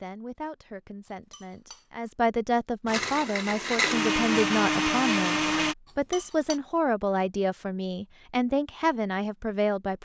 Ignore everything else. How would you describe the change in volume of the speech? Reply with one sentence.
The loudness of the speech goes up.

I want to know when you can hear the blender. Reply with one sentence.
You can hear the blender from 2.9 to 5.8 s.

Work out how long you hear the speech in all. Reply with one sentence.
The speech can be heard for 10 seconds in total.